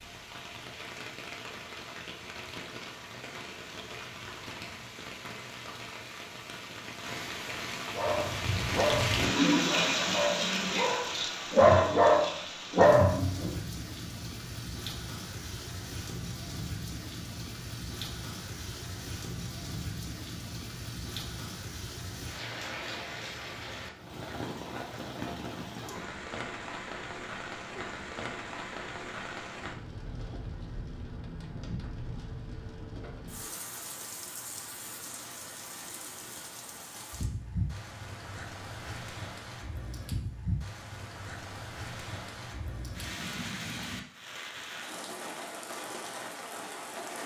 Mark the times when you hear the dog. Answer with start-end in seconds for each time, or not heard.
8.0-13.6.